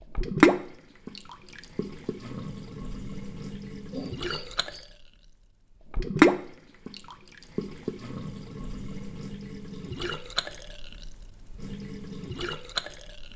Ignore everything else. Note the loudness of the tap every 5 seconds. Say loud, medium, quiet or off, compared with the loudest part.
loud, loud, medium.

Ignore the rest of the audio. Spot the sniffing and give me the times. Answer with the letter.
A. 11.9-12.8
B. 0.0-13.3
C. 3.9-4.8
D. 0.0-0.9
C.